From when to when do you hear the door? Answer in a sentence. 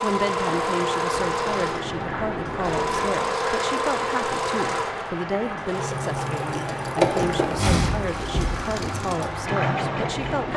The door can be heard from 1.4 to 3.2 s and from 7.2 to 8.7 s.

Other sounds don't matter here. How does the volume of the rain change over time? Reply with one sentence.
The volume of the rain stays about the same.